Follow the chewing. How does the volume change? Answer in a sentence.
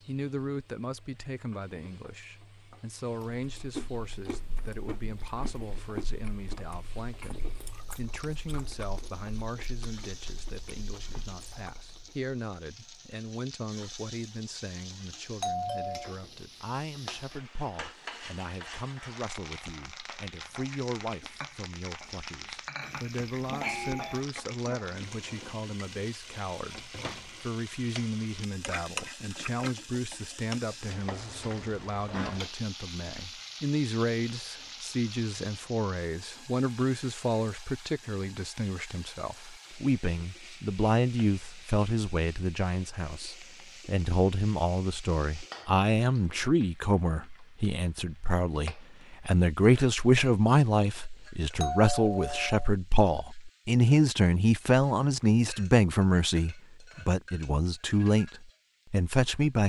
The volume of the chewing goes down.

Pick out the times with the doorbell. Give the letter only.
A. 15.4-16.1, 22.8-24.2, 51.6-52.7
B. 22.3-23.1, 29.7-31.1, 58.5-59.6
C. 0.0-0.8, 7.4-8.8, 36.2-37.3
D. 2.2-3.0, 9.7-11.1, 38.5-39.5
A.